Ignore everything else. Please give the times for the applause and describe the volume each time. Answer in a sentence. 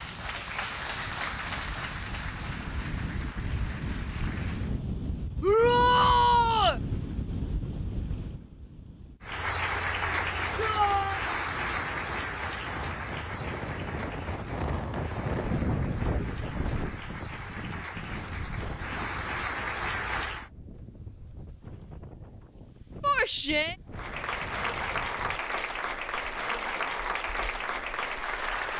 You can hear the applause from 0.0 to 4.8 s, getting quieter; from 9.2 to 20.5 s, getting quieter then louder; and from 23.9 to 28.7 s, at a steady volume.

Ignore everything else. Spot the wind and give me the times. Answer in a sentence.
You can hear the wind from 0.0 to 28.7 s.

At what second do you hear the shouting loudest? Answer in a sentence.
The loudest moment of the shouting is at 6 seconds.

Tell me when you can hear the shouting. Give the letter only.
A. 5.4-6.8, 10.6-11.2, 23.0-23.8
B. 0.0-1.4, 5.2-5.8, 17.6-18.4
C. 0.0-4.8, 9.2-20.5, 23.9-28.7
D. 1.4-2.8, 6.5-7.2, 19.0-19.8
A.